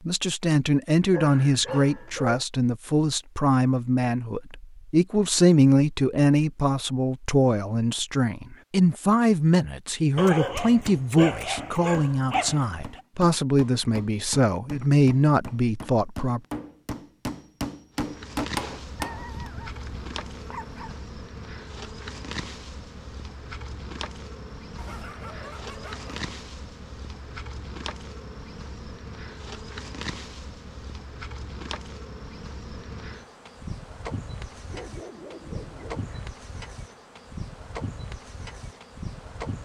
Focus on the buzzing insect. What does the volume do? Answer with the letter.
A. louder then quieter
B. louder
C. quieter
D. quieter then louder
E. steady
E.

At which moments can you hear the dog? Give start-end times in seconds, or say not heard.
1.1-2.5, 10.2-13.0, 18.9-21.0, 24.8-26.3, 34.5-36.1.